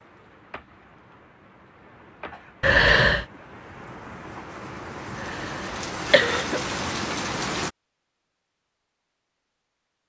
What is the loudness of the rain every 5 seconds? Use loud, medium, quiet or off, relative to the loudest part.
quiet, loud.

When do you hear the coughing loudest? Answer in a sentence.
The loudest moment of the coughing is at 3 seconds.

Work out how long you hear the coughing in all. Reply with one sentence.
You can hear the coughing for 2 seconds altogether.